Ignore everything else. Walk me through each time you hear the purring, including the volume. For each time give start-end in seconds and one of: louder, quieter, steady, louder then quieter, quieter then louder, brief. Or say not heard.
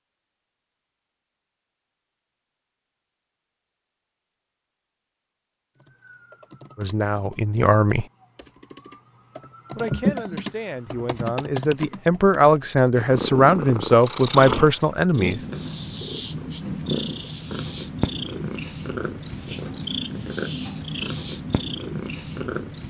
12.9-22.8 steady.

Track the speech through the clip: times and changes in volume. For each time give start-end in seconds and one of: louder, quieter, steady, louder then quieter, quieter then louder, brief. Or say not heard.
6.8-8.1 brief
9.8-15.4 louder.